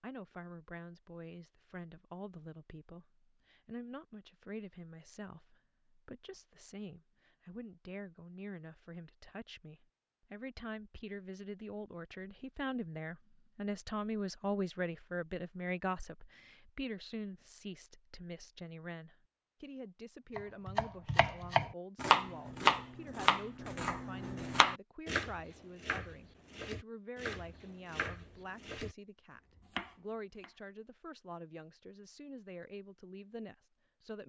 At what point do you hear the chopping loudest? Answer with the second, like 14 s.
23 s.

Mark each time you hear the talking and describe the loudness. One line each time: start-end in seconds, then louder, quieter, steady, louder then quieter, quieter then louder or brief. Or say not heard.
0.0-34.2 louder then quieter.